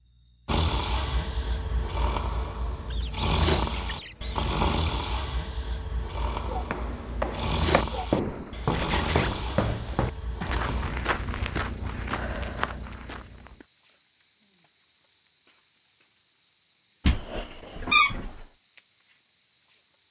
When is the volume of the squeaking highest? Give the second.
18 s.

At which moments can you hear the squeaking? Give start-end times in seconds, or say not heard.
2.9-5.0, 8.7-9.3, 17.1-18.3.